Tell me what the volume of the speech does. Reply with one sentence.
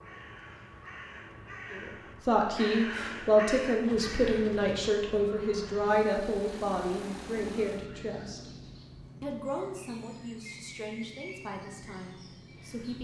The loudness of the speech goes down.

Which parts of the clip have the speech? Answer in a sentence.
The speech can be heard from 1.7 to 8.5 s and from 9.2 to 12.9 s.